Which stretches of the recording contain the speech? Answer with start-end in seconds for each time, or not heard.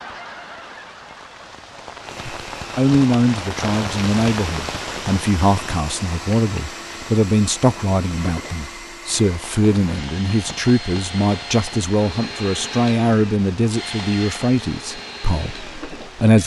2.2-16.4.